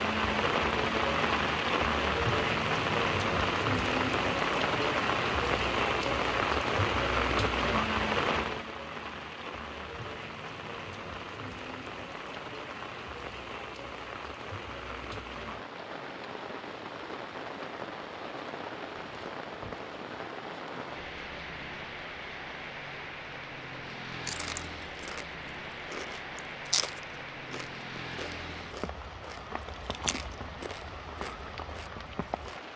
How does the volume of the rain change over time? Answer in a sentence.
The volume of the rain goes down.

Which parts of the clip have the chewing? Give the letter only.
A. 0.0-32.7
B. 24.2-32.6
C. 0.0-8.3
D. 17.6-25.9
B.